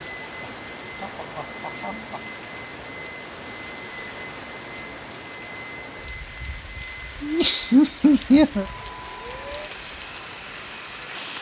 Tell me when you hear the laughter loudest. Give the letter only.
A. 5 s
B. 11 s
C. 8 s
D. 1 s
C.